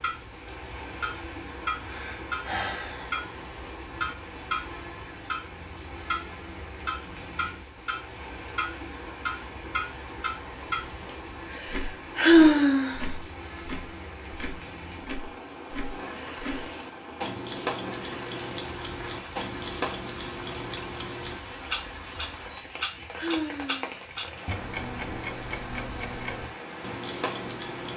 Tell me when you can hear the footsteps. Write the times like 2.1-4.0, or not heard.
not heard.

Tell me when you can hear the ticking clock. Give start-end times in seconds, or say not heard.
0.0-27.9.